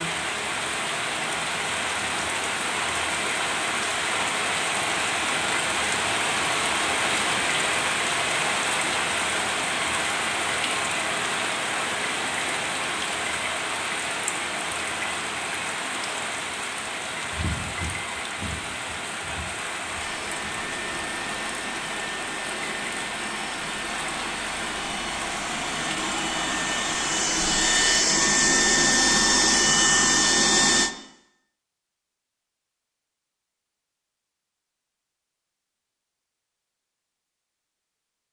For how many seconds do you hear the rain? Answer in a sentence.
The rain can be heard for 28 seconds in total.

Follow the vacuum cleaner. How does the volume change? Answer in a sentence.
The volume of the vacuum cleaner goes up.